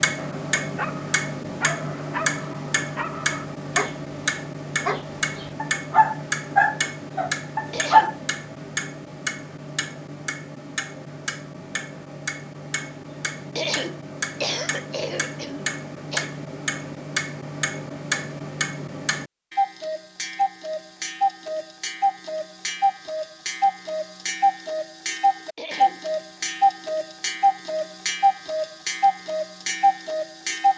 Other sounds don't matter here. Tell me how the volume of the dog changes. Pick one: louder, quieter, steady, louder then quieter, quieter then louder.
louder.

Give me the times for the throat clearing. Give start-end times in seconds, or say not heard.
7.7-8.2, 13.6-16.3, 25.6-26.0.